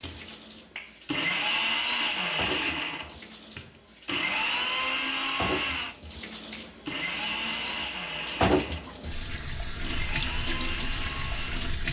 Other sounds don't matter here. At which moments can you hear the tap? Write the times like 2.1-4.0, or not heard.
0.0-11.8.